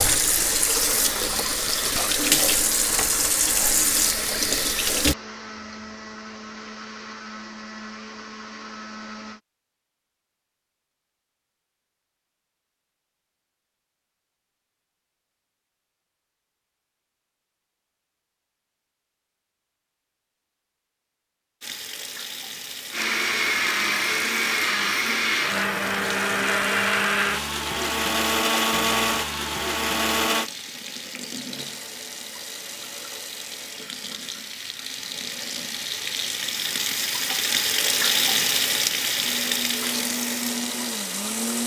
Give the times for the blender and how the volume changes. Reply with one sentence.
The blender can be heard from 0.0 to 9.4 s, at a steady volume; from 22.9 to 30.5 s, at a steady volume; and briefly from 39.1 to 41.6 s.